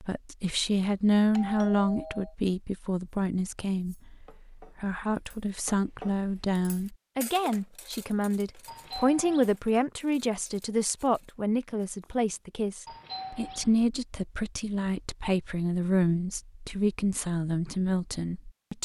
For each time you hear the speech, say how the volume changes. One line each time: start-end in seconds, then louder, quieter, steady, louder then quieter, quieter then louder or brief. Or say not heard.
0.0-18.8 steady.